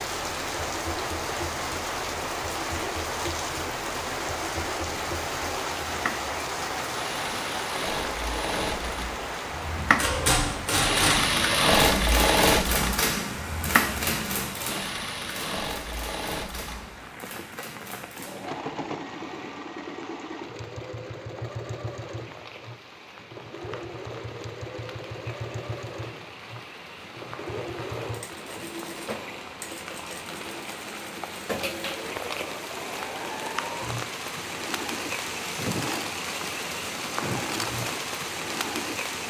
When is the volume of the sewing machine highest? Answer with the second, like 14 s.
12 s.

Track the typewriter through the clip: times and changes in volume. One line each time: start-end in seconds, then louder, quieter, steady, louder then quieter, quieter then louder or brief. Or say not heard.
9.8-18.5 quieter.